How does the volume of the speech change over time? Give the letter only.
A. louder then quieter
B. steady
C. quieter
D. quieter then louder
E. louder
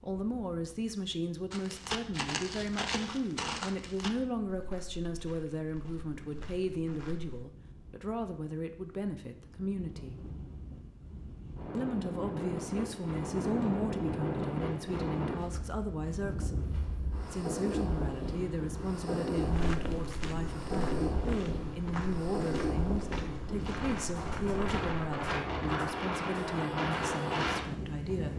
B.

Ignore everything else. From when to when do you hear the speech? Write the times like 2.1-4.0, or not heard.
0.0-10.2, 11.8-16.7, 17.3-28.3.